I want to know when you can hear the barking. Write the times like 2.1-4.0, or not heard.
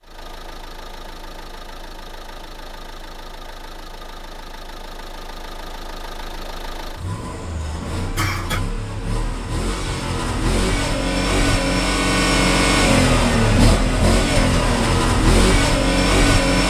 not heard.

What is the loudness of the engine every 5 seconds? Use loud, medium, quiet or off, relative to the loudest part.
quiet, quiet, loud, loud.